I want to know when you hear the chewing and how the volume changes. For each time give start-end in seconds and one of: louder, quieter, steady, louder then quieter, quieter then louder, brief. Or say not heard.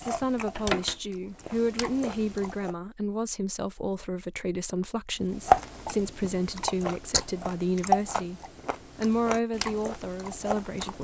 0.0-2.8 brief
5.5-10.9 louder then quieter.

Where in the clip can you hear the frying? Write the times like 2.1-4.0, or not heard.
not heard.